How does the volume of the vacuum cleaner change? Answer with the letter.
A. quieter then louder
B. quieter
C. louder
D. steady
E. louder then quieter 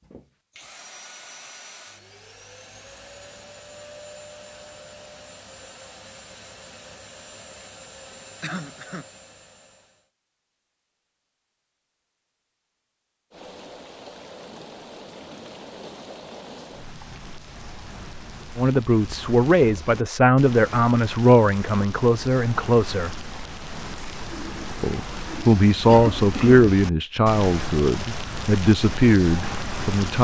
D.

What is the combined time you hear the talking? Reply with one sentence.
You can hear the talking for 10 seconds altogether.